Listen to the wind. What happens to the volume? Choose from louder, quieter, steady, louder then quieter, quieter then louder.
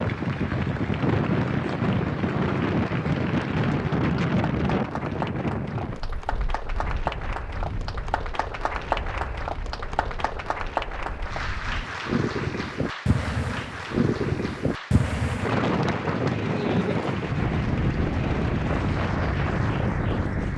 quieter then louder.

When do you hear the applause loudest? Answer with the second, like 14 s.
9 s.